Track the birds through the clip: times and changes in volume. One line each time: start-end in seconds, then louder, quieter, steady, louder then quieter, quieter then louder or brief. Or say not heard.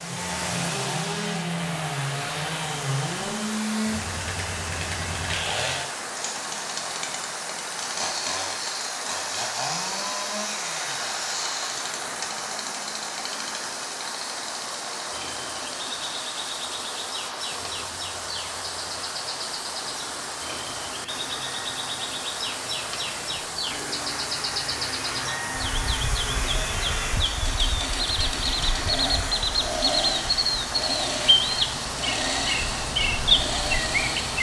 15.1-34.3 louder.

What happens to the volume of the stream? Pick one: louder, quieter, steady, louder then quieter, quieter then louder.
steady.